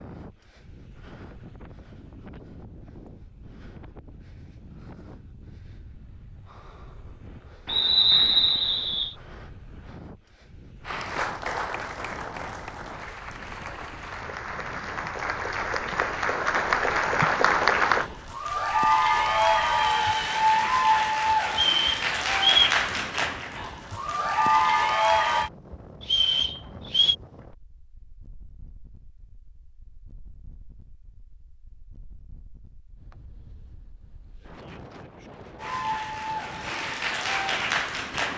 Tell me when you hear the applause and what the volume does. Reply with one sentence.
The applause can be heard from 10.8 to 25.5 s, getting louder; and briefly from 35.5 to 38.3 s.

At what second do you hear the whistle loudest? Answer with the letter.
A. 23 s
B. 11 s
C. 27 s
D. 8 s
D.